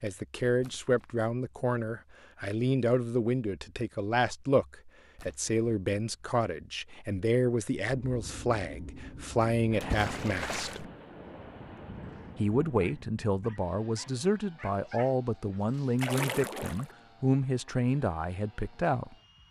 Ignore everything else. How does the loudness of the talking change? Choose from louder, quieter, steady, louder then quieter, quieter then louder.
steady.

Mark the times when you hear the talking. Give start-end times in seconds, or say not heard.
0.0-10.8, 12.3-19.1.